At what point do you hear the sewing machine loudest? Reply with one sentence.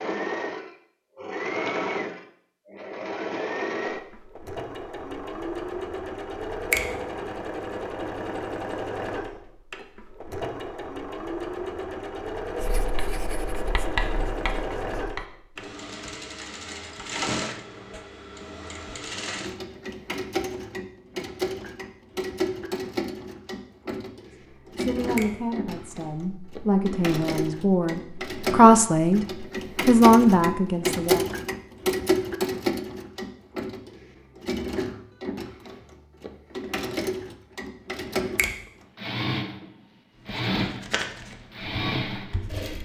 The loudest moment of the sewing machine is at 32 seconds.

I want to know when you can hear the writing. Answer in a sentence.
You can hear the writing from 12.6 to 15.2 s and from 40.1 to 42.8 s.